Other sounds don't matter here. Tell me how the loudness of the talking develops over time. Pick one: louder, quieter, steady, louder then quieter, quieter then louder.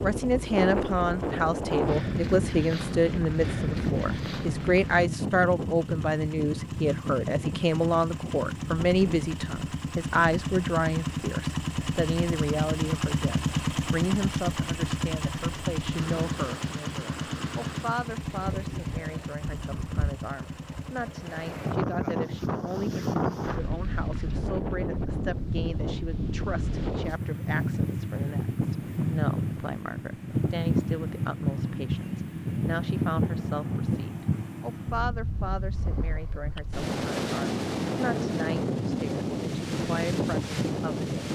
quieter.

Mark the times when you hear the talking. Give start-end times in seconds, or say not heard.
0.0-41.2.